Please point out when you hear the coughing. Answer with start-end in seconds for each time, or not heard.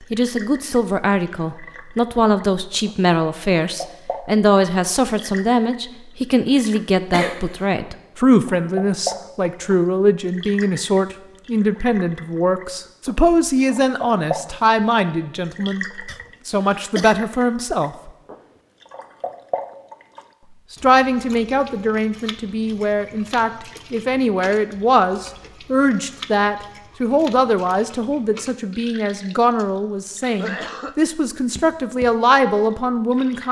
7.1-7.7, 16.1-17.2, 29.1-30.9.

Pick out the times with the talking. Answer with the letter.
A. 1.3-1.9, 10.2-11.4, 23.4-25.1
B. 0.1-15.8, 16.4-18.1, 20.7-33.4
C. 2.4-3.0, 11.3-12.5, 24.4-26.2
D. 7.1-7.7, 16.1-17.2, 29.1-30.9
B.